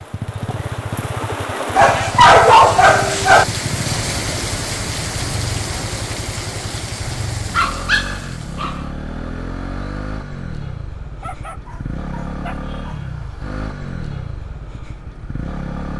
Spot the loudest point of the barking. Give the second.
2 s.